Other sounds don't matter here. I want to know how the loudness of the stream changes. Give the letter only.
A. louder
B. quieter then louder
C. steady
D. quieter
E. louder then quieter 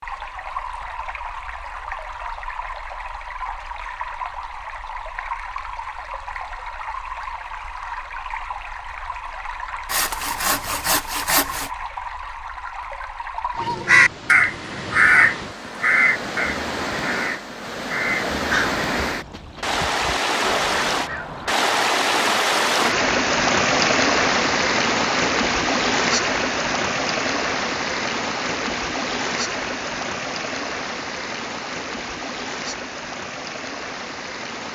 E.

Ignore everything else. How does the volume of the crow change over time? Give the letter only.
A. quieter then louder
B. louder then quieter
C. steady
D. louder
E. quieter
E.